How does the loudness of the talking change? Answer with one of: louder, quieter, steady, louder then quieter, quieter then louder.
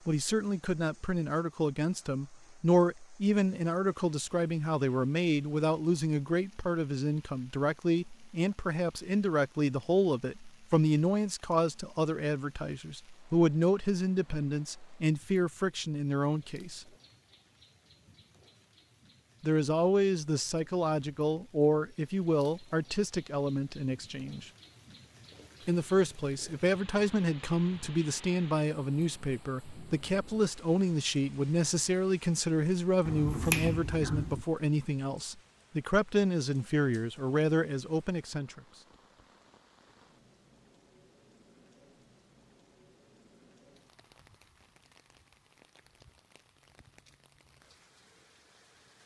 steady.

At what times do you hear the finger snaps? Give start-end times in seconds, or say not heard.
33.0-34.5.